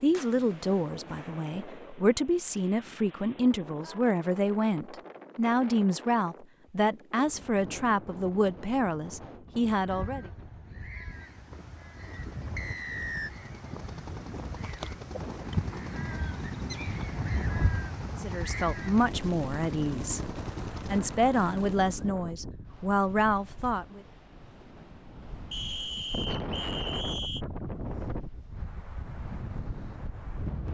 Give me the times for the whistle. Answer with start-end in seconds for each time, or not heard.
12.6-13.3, 25.5-27.4.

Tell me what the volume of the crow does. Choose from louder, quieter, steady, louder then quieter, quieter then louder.
louder.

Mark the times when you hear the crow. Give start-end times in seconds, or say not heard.
9.8-19.1.